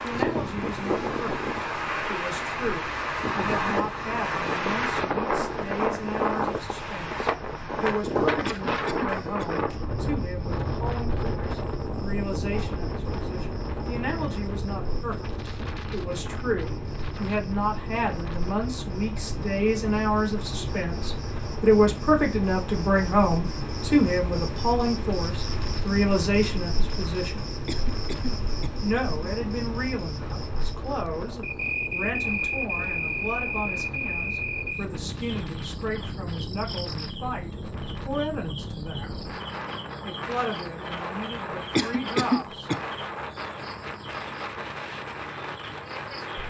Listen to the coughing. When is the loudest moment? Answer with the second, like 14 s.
42 s.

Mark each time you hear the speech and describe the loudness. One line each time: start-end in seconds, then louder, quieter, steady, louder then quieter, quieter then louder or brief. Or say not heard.
0.0-27.4 louder
28.8-39.2 steady
40.0-42.7 brief.